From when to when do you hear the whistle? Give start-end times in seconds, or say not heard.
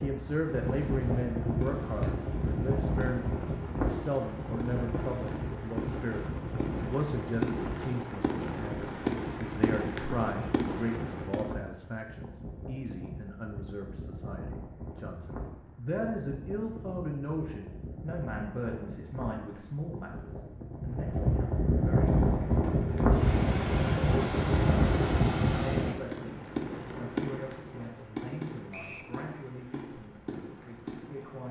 28.7-29.1.